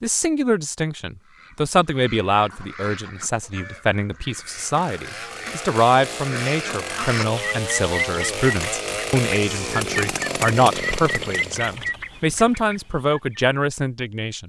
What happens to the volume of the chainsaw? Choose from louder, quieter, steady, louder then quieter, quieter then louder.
louder.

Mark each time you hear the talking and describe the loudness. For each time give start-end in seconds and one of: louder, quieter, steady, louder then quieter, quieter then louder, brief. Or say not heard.
0.0-14.4 steady.